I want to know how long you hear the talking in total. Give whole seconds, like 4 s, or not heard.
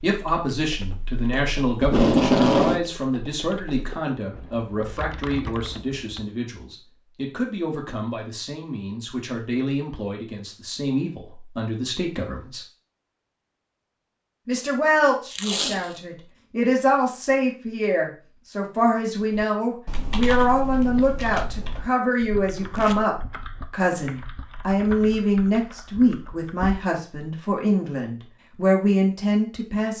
28 s.